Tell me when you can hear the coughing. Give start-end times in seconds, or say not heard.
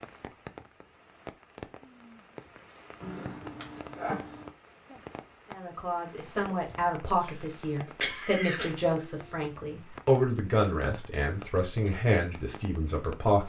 3.0-4.5, 7.2-8.8.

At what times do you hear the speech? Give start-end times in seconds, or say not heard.
5.5-13.4.